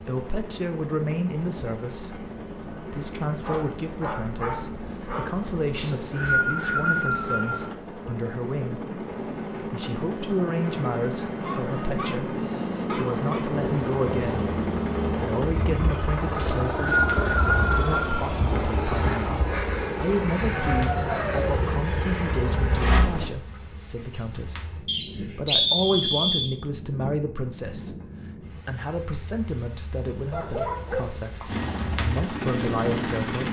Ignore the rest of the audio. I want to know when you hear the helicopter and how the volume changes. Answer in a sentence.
You can hear the helicopter from 0.0 to 23.3 s, getting louder; and briefly from 31.4 to 33.4 s.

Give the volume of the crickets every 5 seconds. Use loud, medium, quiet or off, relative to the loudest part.
loud, loud, medium, quiet, quiet, quiet, medium.